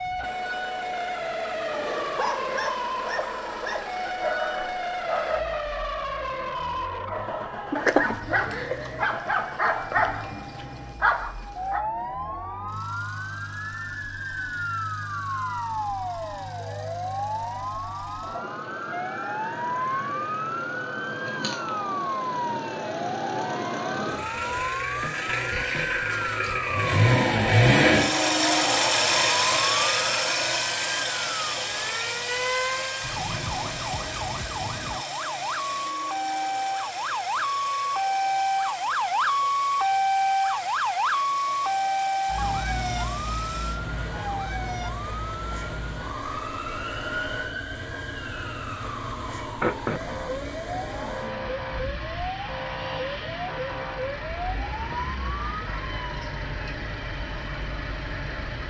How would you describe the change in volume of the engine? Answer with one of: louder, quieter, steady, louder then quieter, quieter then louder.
louder then quieter.